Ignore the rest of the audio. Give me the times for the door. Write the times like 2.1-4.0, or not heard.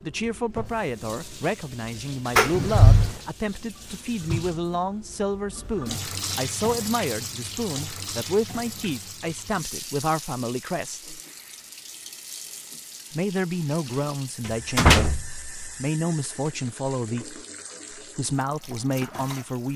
2.4-3.1, 14.4-15.6.